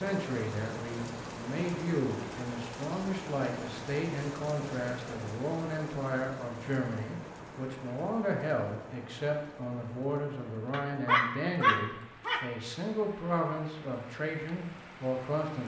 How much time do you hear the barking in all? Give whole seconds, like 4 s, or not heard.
2 s.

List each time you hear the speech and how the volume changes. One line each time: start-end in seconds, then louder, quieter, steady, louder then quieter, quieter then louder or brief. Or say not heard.
0.0-15.6 steady.